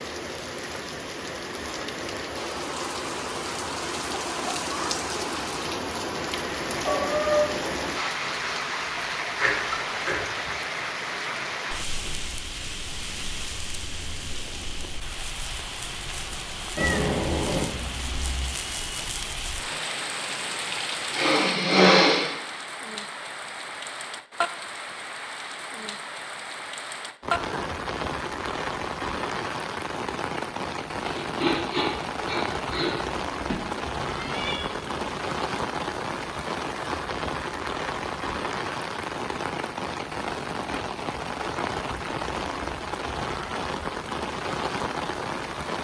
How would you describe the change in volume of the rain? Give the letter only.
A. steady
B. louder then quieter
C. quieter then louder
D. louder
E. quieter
A.